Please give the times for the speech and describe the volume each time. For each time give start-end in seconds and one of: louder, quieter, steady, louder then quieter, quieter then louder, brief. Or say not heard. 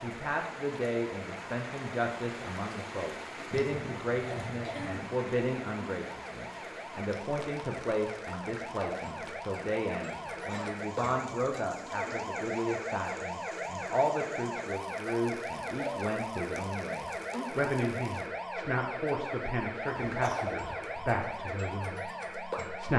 0.0-22.9 steady.